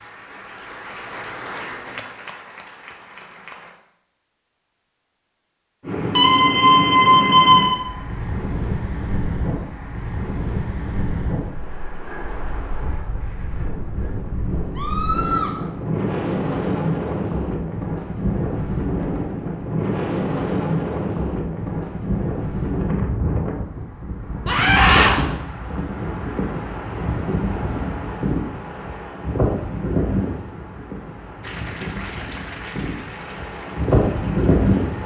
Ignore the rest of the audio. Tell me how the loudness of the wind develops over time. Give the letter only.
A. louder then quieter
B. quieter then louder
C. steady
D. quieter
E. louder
C.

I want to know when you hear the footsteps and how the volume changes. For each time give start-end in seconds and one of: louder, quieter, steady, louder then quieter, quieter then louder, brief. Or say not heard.
not heard.